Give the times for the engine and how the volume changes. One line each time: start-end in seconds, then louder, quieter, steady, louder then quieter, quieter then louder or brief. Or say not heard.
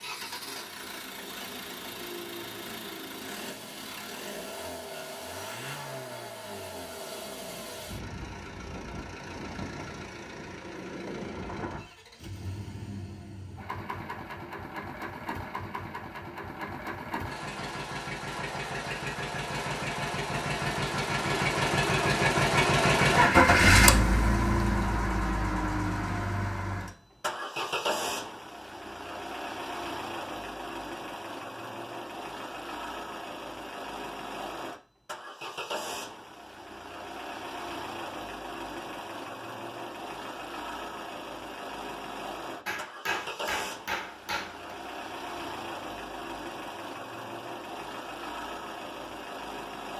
0.0-49.9 louder then quieter.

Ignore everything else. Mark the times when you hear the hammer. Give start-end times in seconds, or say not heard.
42.6-44.8.